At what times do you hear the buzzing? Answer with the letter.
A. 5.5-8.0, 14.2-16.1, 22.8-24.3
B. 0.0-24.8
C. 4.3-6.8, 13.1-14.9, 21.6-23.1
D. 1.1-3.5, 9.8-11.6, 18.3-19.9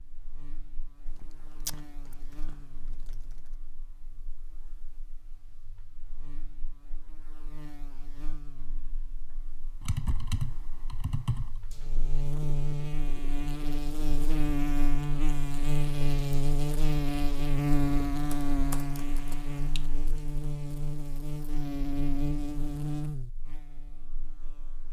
B.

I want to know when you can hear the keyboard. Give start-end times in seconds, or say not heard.
1.1-3.5, 9.8-11.6, 18.3-19.9.